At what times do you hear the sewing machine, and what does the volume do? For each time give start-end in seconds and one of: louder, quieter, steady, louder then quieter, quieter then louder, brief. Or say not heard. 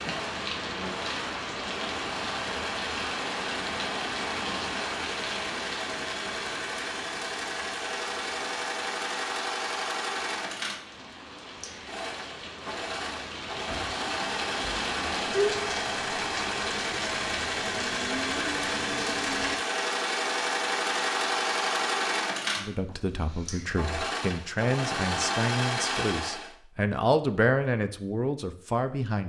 0.0-26.5 louder.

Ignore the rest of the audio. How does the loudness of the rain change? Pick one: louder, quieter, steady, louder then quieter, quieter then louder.
quieter then louder.